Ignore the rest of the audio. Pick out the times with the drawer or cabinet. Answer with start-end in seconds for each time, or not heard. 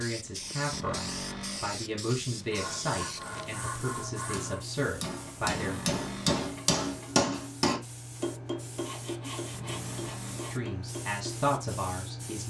0.7-1.8, 5.4-6.5, 9.5-10.6.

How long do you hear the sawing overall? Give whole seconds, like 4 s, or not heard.
4 s.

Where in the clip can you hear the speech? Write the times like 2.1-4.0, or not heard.
0.0-5.8, 10.5-12.4.